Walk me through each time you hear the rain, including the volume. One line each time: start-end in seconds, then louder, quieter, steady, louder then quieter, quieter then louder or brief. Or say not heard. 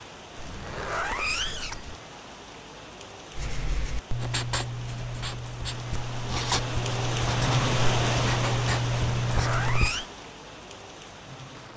0.0-11.7 louder then quieter.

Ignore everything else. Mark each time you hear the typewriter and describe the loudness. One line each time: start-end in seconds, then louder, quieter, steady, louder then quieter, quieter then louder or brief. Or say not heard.
not heard.